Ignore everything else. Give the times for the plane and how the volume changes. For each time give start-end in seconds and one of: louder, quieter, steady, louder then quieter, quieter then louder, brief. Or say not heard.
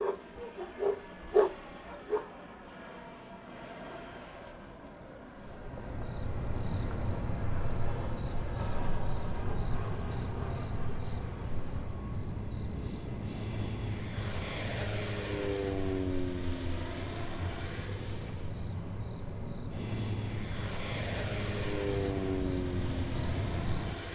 0.0-24.0 louder.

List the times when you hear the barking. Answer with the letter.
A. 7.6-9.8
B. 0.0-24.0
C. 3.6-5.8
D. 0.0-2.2
D.